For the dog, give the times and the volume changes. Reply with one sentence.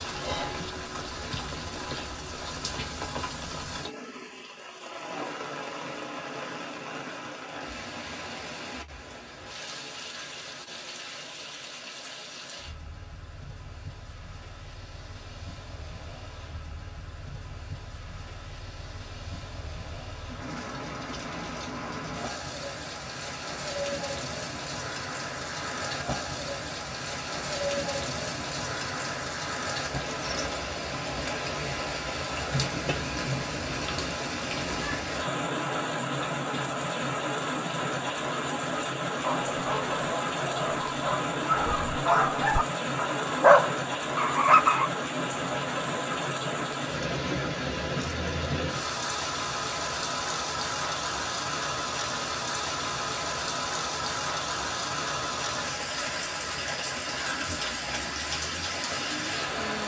The dog can be heard from 39.2 to 44.9 s, getting louder.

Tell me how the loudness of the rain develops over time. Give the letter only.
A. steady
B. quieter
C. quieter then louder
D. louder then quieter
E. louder
E.